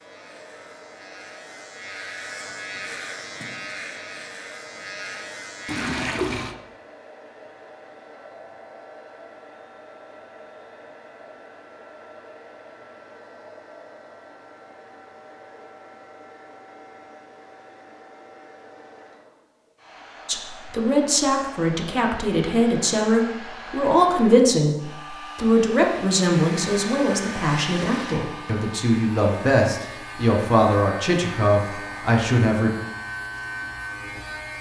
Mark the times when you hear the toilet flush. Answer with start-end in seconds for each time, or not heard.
5.7-6.5.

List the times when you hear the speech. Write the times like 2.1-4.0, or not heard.
20.2-32.7.